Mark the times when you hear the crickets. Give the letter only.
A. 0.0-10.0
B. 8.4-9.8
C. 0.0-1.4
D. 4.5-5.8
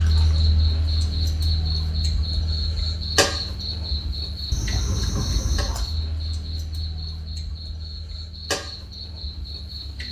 A.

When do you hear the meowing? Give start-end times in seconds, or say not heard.
4.5-5.8.